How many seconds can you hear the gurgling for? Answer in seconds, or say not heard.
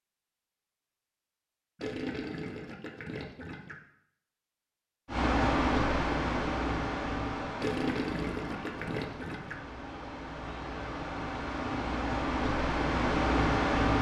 4 s.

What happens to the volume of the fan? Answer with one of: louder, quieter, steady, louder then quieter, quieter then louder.
quieter then louder.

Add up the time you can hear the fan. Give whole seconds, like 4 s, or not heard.
9 s.